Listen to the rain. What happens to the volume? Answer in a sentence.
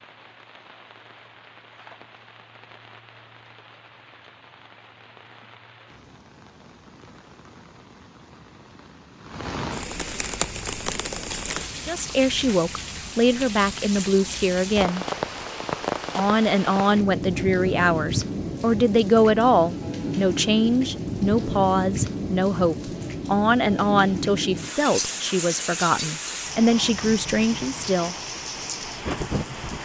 The loudness of the rain goes up.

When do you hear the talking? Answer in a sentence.
The talking can be heard from 11.8 to 15.1 s and from 16.1 to 28.1 s.